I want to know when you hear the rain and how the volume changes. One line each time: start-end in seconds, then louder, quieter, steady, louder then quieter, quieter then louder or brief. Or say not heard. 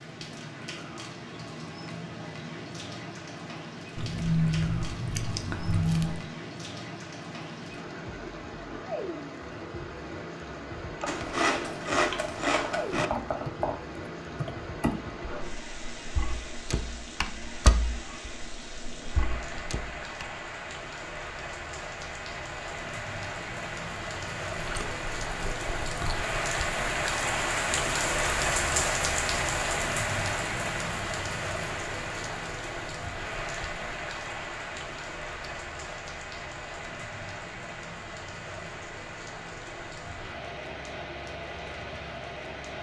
0.0-42.7 louder then quieter.